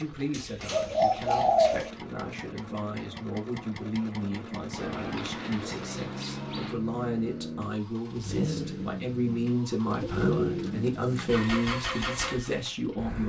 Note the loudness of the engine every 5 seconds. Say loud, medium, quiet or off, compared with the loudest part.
medium, loud, loud.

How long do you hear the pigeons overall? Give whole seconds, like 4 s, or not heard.
5 s.